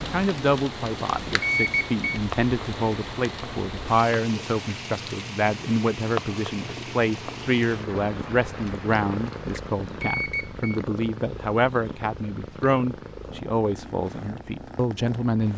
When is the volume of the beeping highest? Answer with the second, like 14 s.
2 s.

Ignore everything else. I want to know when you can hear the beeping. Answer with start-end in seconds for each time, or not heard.
1.4-2.2, 10.0-10.8.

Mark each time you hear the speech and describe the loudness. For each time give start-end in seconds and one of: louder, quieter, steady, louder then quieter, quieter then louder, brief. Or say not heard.
0.0-15.5 steady.